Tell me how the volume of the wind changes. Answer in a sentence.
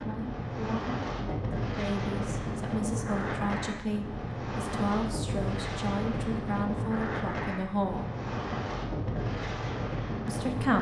The loudness of the wind stays about the same.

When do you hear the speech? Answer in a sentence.
The speech can be heard from 0.1 to 8.1 s and from 10.2 to 10.7 s.